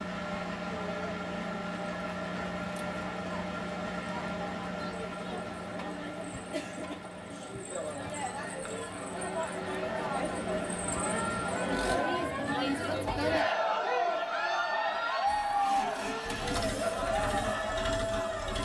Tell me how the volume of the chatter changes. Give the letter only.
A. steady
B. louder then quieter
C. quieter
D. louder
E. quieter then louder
D.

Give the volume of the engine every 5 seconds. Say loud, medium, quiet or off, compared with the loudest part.
loud, medium, loud, loud.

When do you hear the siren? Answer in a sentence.
You can hear the siren from 15.8 to 18.5 s.